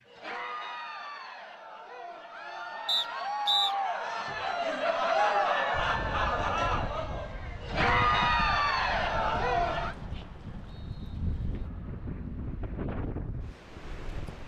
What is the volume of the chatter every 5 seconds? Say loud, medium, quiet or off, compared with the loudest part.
medium, loud, off.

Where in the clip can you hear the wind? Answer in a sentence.
The wind can be heard from 5.7 to 14.4 s.